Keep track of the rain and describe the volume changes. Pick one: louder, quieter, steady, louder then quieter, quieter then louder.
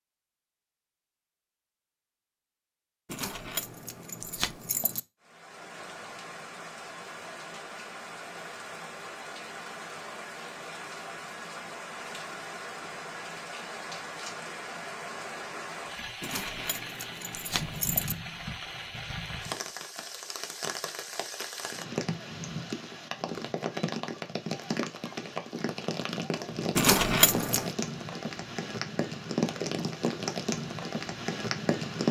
louder.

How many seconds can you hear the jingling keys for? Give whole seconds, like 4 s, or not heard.
5 s.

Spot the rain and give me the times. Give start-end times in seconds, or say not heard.
5.2-32.0.